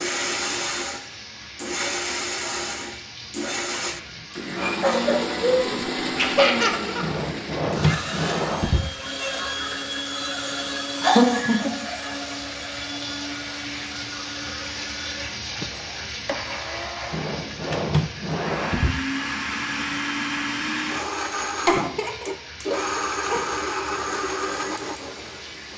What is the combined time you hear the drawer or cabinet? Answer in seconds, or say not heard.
4 s.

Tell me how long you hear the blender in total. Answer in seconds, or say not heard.
26 s.